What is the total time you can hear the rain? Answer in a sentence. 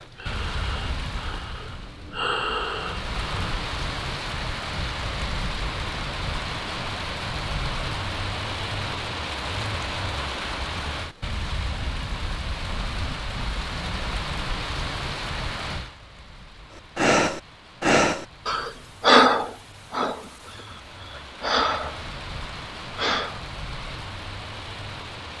The rain can be heard for 25 seconds in total.